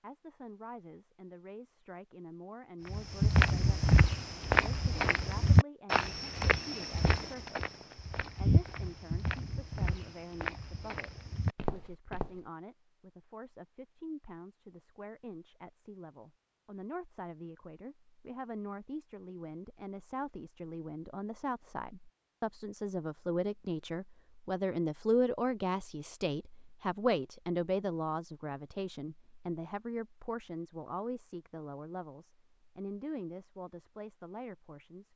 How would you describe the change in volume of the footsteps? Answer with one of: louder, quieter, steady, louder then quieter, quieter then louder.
quieter.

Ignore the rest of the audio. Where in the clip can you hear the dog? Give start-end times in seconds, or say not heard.
not heard.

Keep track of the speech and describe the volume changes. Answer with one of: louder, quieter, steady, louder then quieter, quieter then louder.
louder then quieter.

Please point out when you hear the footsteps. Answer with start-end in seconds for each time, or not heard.
2.9-12.4.